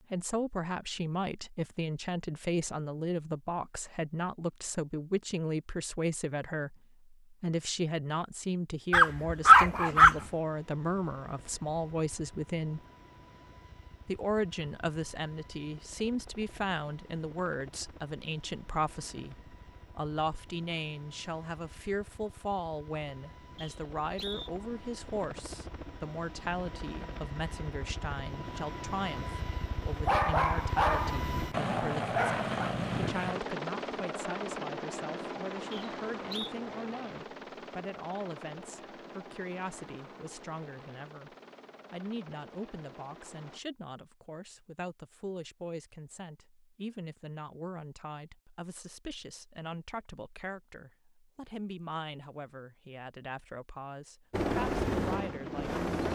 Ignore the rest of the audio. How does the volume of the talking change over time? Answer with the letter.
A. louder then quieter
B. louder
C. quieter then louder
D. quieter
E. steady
D.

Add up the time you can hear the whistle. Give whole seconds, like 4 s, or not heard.
2 s.